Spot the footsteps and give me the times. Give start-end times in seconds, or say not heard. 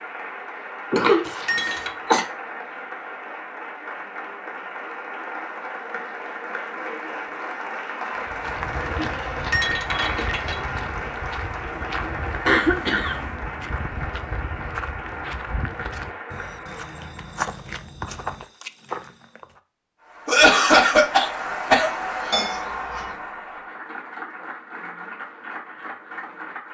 8.2-19.6.